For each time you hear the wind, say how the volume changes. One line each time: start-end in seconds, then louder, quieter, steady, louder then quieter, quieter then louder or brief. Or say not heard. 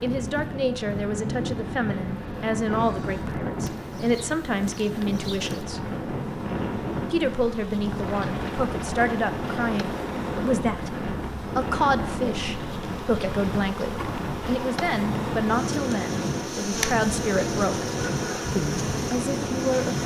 0.0-20.0 steady.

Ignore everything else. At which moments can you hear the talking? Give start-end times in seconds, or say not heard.
0.0-5.8, 7.1-10.9, 11.6-17.9, 18.6-20.0.